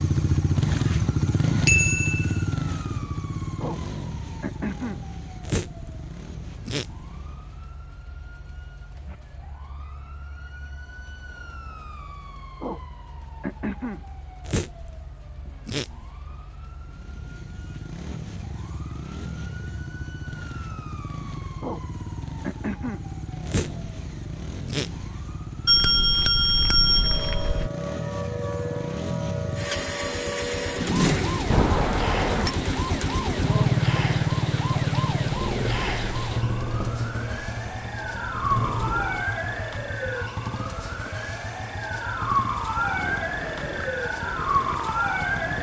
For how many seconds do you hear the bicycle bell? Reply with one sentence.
You can hear the bicycle bell for 4 seconds altogether.